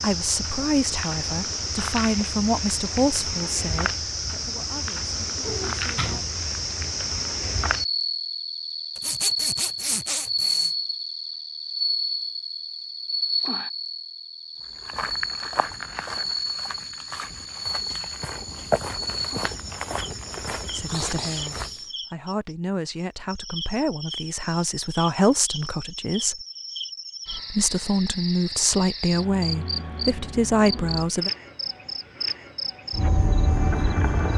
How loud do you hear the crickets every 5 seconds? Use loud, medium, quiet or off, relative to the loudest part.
loud, loud, loud, loud, medium, medium, loud.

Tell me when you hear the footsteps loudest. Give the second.
19 s.